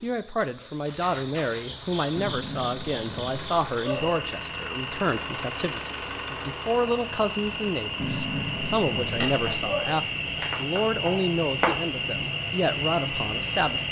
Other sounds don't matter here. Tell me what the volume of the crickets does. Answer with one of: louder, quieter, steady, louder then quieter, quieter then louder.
louder.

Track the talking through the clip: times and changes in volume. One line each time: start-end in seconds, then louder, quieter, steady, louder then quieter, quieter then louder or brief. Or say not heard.
0.0-13.8 steady.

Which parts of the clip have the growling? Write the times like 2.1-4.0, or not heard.
2.1-4.2, 8.0-10.0.